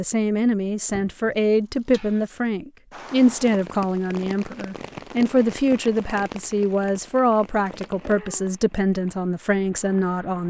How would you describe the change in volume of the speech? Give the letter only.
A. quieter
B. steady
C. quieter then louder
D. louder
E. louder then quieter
B.